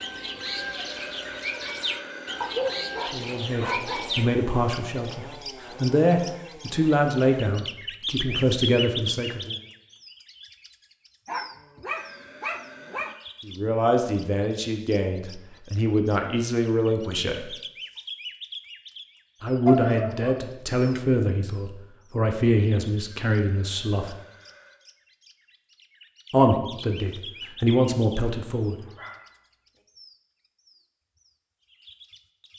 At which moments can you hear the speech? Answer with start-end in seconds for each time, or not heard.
3.1-9.6, 13.4-17.5, 19.4-24.1, 26.3-28.8.